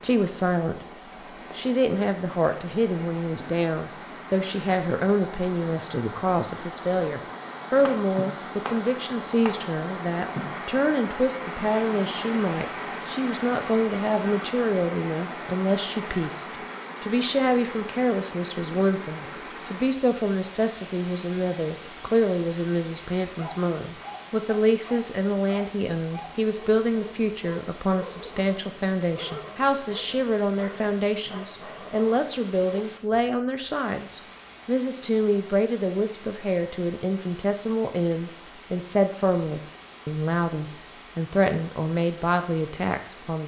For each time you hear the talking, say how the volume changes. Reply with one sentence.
The talking can be heard briefly from 0.0 to 0.8 s; and from 1.6 to 43.4 s, at a steady volume.